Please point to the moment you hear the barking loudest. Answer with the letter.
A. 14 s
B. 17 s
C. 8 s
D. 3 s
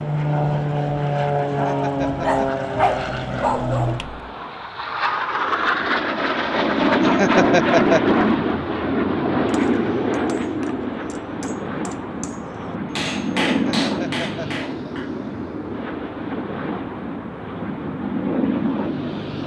D.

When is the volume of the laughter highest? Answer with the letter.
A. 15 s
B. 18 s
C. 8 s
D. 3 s
C.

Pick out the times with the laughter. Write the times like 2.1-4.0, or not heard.
1.4-2.5, 7.0-8.0, 13.7-14.7.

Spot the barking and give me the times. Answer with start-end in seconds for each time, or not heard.
2.0-4.3.